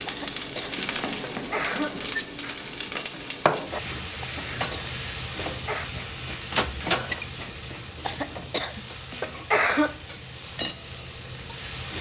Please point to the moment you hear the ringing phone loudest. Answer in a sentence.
The loudest moment of the ringing phone is at 7 seconds.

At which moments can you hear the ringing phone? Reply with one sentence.
You can hear the ringing phone from 0.8 to 2.2 s and from 6.5 to 7.2 s.